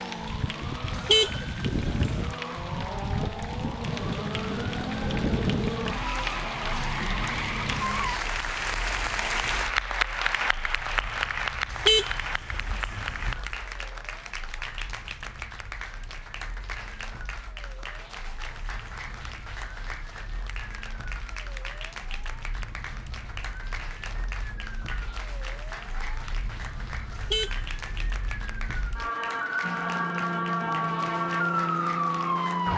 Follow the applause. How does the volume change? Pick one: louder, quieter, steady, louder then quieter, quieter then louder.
louder then quieter.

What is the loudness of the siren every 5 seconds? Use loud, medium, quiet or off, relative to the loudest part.
medium, medium, quiet, quiet, quiet, medium, loud.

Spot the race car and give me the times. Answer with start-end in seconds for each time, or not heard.
0.0-8.2, 29.6-32.7.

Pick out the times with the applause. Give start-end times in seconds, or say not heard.
0.0-32.7.